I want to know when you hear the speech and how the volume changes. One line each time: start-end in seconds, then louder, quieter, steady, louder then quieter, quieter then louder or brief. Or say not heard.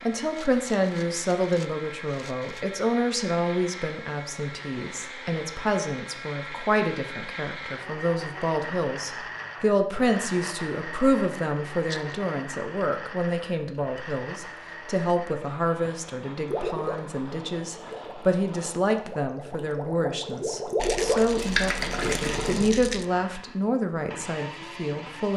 0.0-25.3 steady.